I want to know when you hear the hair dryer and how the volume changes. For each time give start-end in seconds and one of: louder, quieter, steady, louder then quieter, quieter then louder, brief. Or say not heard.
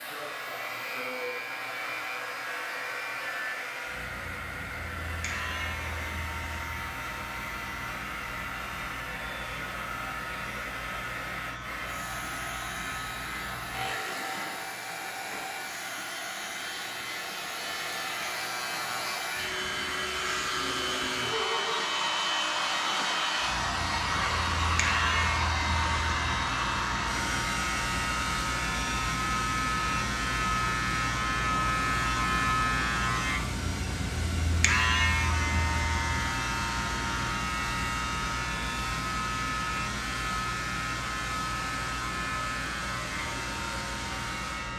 0.0-44.7 louder then quieter.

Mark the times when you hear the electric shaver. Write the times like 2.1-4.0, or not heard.
0.0-44.7.